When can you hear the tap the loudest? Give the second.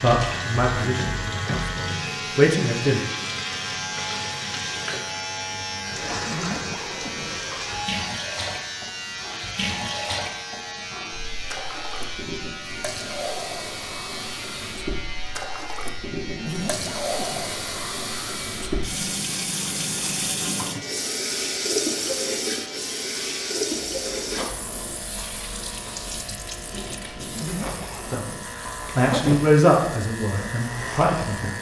22 s.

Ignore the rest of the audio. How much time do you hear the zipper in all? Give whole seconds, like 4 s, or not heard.
4 s.